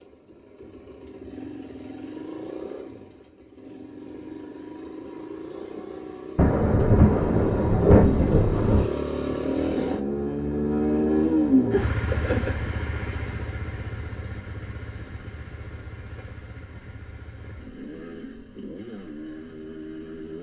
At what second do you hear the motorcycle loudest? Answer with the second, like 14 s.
11 s.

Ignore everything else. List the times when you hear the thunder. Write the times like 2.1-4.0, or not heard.
6.3-8.9.